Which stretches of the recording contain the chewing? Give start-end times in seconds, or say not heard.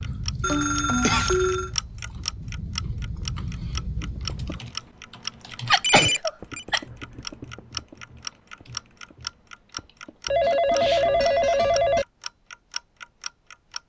0.0-4.6.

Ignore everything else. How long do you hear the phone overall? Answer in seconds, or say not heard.
4 s.